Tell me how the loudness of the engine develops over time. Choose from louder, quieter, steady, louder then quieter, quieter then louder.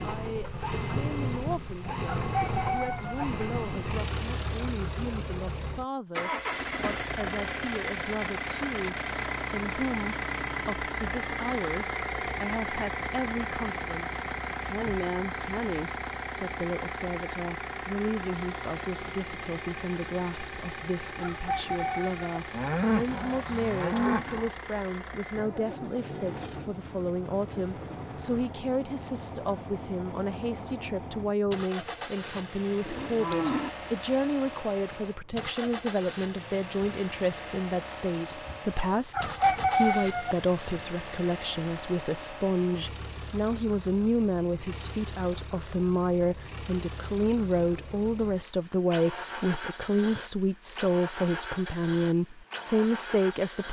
quieter.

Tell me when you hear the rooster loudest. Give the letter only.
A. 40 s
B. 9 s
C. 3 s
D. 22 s
A.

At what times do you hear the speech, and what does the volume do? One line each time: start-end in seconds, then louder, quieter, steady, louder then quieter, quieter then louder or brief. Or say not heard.
0.0-53.6 louder.